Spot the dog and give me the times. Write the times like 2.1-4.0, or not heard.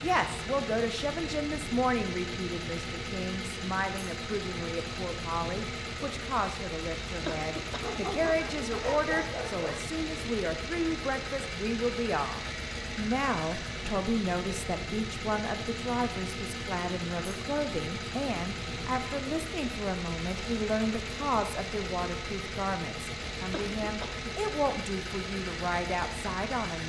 7.7-9.8.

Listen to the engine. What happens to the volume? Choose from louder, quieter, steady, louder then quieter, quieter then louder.
steady.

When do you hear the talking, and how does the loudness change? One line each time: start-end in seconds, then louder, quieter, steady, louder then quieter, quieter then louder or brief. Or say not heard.
0.0-26.8 steady.